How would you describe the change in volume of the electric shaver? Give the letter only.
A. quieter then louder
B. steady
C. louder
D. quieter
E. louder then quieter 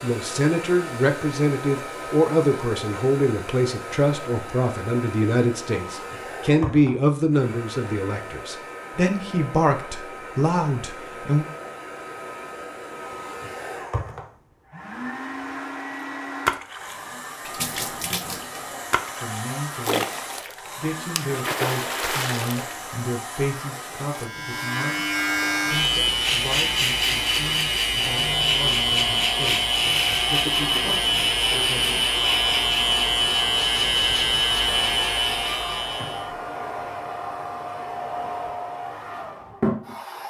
B.